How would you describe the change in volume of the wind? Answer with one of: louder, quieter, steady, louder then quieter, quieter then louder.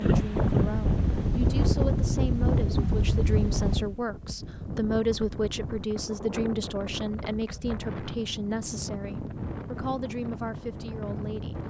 quieter.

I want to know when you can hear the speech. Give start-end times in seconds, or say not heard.
0.0-11.6.